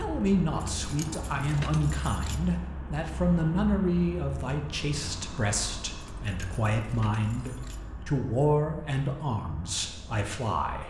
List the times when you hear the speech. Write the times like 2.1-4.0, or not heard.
0.0-10.8.